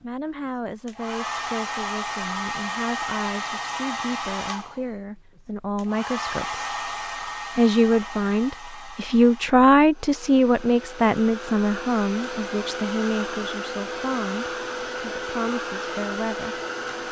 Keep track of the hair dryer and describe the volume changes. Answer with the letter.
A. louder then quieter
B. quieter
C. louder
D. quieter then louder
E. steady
D.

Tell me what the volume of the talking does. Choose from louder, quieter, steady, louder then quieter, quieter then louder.
louder then quieter.